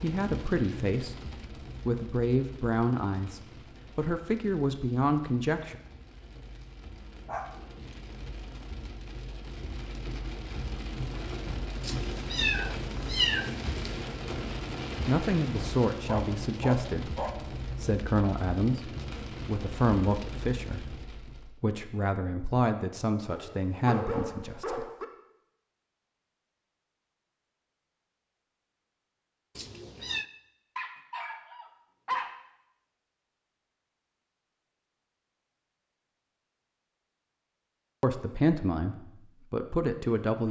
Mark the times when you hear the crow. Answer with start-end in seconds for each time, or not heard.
not heard.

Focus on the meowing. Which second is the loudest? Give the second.
13 s.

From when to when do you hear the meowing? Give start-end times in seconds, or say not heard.
11.8-14.1, 29.6-30.2.